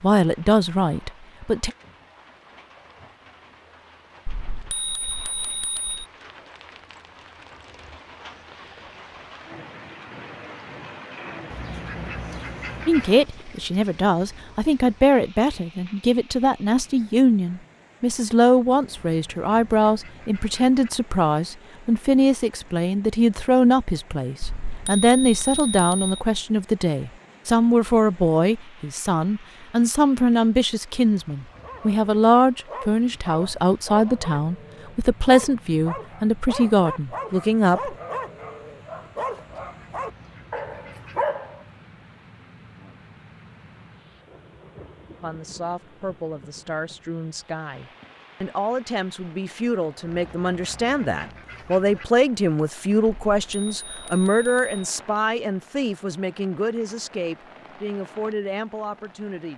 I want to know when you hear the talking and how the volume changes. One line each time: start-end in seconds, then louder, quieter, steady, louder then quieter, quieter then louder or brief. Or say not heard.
0.0-1.7 brief
12.8-38.0 steady
45.2-59.5 louder then quieter.